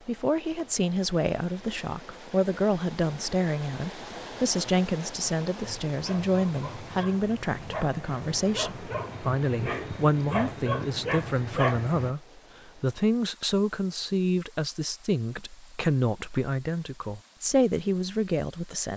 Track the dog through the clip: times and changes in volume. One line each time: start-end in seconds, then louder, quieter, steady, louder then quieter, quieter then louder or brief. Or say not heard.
5.6-12.2 louder.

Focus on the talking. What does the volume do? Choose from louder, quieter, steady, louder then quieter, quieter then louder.
steady.